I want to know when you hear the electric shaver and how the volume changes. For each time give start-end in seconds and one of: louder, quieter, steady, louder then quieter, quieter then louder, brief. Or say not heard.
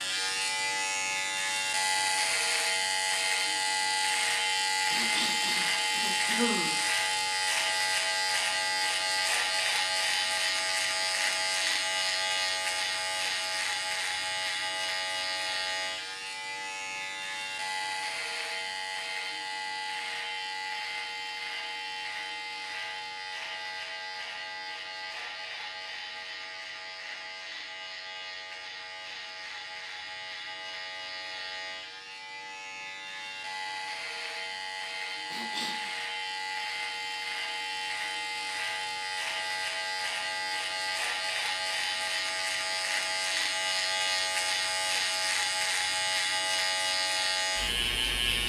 0.0-48.4 quieter then louder.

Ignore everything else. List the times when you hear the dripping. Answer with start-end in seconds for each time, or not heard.
not heard.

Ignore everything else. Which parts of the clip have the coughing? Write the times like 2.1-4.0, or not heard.
4.9-6.8, 35.2-36.0.